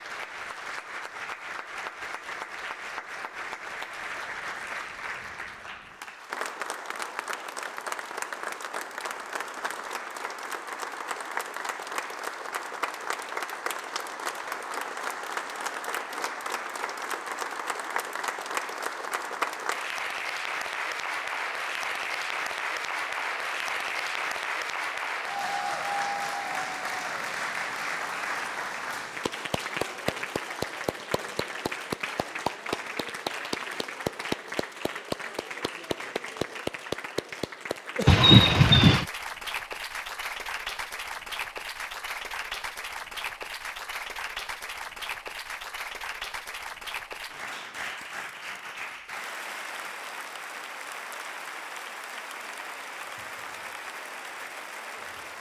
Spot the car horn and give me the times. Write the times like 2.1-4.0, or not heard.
38.0-39.0.